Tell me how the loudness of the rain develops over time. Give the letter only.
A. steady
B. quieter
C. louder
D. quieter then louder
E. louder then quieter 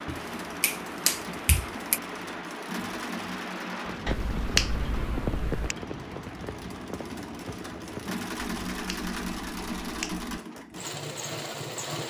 E.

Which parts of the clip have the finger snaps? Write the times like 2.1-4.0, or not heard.
0.1-2.0, 4.0-5.8, 8.6-10.4.